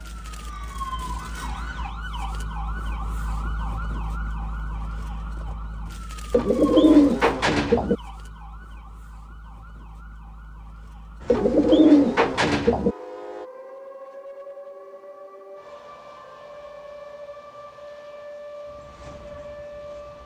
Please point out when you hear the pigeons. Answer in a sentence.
The pigeons can be heard from 6.3 to 8.0 s and from 11.2 to 12.9 s.